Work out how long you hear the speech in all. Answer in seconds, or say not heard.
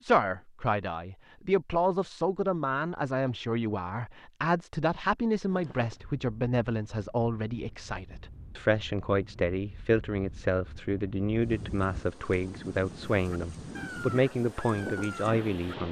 16 s.